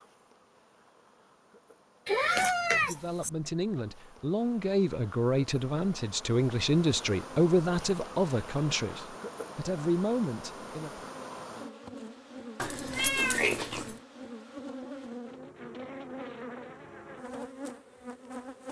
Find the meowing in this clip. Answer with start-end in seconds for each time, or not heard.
2.0-3.3, 12.6-13.9.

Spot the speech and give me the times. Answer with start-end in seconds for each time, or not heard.
2.7-11.1.